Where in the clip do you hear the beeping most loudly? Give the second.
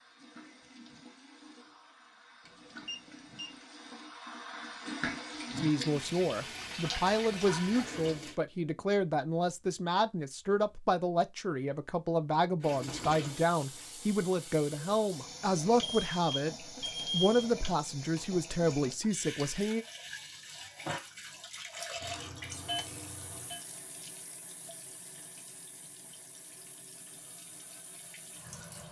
17 s.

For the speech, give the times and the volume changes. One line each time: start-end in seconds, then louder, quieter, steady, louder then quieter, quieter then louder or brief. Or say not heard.
5.5-19.9 steady.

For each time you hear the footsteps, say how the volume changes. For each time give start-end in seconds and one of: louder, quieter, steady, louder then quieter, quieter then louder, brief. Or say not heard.
not heard.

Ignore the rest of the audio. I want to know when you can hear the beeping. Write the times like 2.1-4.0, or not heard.
2.5-3.5, 15.8-17.4, 22.0-23.6.